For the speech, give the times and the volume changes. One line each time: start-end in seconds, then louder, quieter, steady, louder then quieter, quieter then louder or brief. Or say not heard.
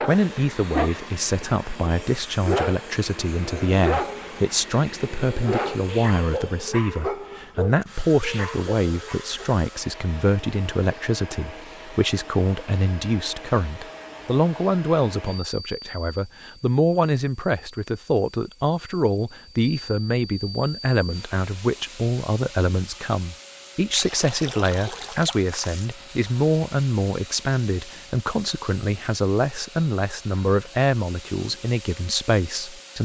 0.1-33.0 steady.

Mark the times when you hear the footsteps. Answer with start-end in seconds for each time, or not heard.
not heard.